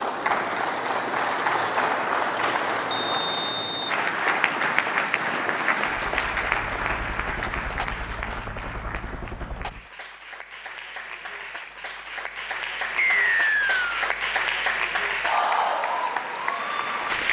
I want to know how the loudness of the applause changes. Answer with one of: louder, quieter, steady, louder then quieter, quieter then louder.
quieter then louder.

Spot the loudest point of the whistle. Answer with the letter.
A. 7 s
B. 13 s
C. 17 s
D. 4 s
B.